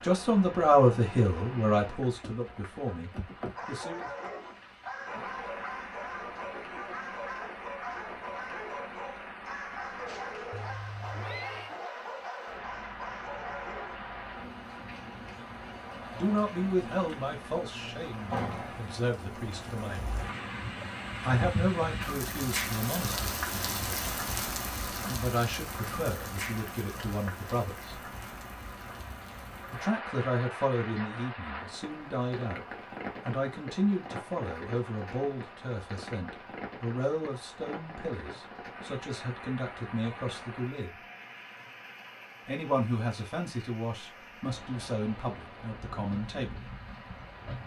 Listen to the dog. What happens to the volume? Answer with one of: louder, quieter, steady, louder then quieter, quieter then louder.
steady.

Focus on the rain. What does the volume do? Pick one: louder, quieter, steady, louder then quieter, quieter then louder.
louder then quieter.